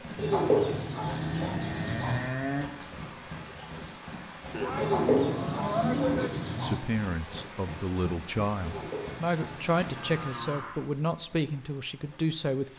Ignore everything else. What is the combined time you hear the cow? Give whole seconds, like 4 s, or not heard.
4 s.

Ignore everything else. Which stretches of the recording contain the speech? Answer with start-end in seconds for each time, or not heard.
6.6-12.7.